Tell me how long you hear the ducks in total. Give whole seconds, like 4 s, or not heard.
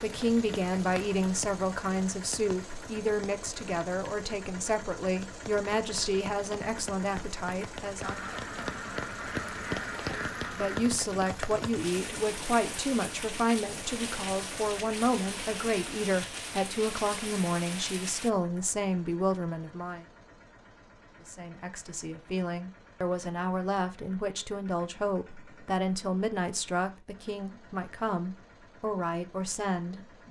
3 s.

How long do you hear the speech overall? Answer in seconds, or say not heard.
27 s.